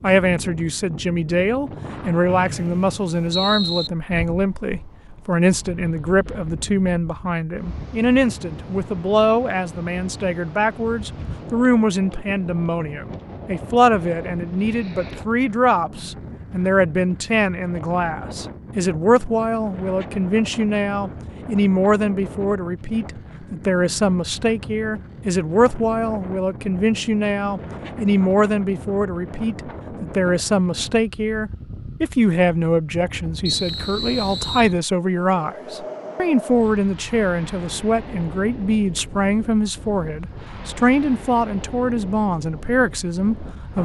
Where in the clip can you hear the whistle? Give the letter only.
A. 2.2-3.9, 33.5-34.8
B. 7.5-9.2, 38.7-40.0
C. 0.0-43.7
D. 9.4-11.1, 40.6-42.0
A.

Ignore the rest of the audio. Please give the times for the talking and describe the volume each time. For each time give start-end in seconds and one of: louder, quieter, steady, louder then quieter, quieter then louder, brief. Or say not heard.
0.0-43.7 steady.